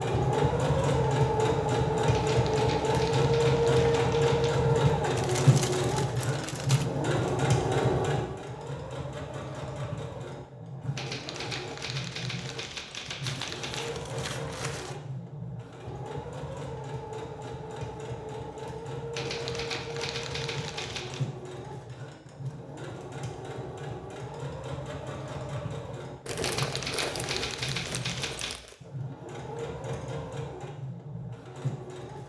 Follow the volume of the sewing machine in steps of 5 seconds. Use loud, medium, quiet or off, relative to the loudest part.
loud, loud, quiet, quiet, quiet, quiet, quiet.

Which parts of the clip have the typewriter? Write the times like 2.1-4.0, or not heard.
2.1-4.5, 10.9-13.9, 19.1-21.2, 26.4-28.6.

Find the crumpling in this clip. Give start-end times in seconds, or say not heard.
5.2-6.8, 13.2-14.9, 26.2-28.8.